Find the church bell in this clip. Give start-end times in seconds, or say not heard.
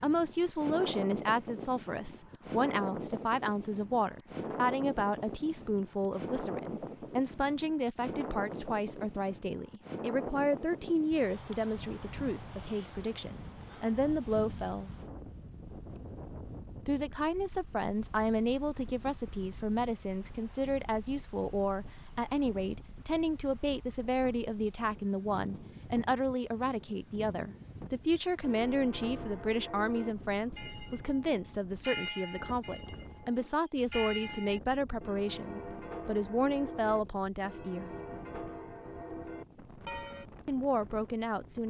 28.4-40.2.